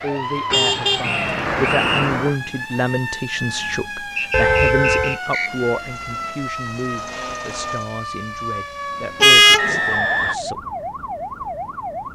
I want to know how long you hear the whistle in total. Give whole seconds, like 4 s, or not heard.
3 s.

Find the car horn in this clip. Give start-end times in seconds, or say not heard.
0.5-2.4, 4.3-5.2, 9.2-9.8.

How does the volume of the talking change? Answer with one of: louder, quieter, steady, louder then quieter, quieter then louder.
quieter.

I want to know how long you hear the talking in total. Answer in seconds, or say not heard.
11 s.